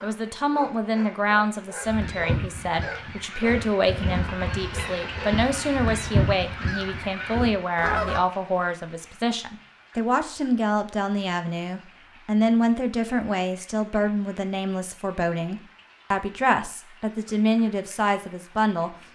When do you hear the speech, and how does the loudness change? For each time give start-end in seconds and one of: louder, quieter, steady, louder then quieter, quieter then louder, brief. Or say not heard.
0.0-18.9 steady.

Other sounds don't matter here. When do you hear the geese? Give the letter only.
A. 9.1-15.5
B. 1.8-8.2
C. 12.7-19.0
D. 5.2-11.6
B.